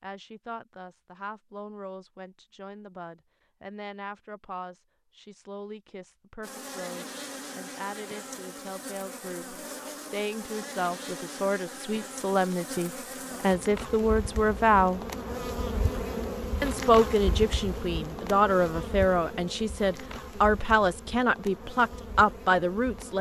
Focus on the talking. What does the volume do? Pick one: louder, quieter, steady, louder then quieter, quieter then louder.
louder.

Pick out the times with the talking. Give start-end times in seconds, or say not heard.
0.0-15.0, 16.6-23.1.